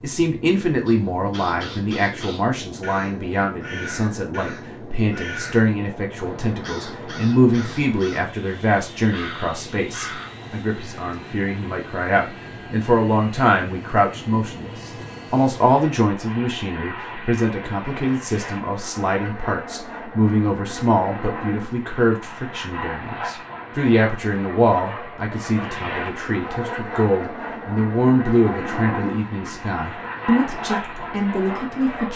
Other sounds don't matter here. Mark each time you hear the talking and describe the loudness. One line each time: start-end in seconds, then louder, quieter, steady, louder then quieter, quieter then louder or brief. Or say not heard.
0.0-32.1 steady.